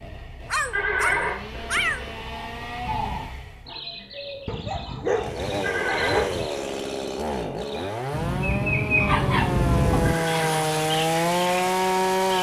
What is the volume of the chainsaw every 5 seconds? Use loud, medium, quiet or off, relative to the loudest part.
quiet, medium, loud.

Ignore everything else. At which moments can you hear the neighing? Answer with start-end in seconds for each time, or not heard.
0.7-2.2, 5.6-6.4, 10.0-10.7.